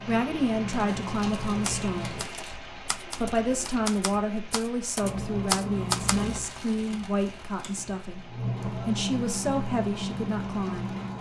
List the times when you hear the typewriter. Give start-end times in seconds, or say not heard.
1.4-6.2.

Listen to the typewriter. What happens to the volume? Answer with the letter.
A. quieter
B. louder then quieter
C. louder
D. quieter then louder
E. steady
C.